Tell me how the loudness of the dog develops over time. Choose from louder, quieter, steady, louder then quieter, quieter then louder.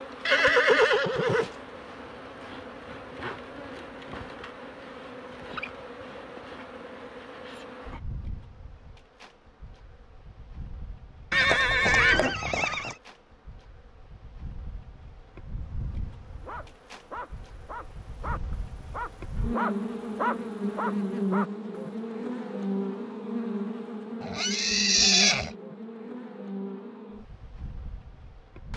louder.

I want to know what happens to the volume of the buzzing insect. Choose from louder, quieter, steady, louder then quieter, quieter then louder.
quieter then louder.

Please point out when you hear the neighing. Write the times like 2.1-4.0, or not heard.
0.2-1.5, 11.3-12.9, 24.2-25.5.